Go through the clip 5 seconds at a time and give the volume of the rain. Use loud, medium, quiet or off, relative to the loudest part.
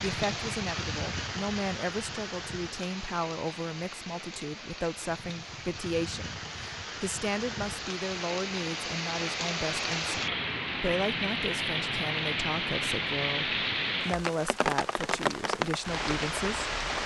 medium, medium, loud, loud.